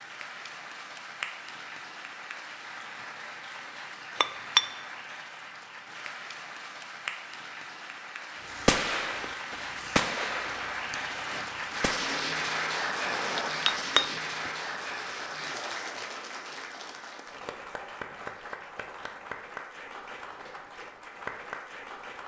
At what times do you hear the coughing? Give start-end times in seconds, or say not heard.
not heard.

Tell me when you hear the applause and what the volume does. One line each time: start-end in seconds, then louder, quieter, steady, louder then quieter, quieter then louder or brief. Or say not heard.
0.0-22.2 louder then quieter.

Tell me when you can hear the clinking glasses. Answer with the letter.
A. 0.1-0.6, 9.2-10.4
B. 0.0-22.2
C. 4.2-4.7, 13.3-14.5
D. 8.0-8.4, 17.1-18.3
C.